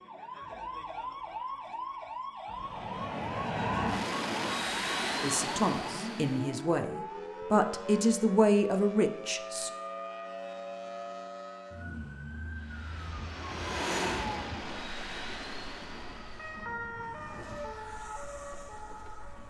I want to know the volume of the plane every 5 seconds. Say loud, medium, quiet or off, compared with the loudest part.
loud, loud, loud, medium.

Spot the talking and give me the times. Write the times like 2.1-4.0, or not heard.
5.2-9.7.